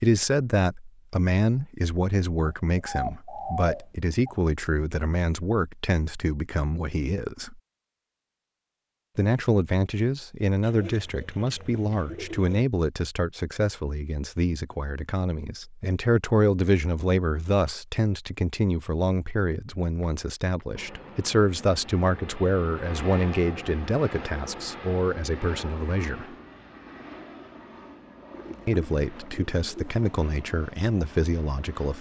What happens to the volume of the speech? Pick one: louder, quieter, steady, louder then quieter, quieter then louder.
steady.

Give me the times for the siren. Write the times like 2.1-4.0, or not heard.
not heard.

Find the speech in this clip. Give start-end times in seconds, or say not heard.
0.0-7.6, 9.2-26.2, 28.6-31.9.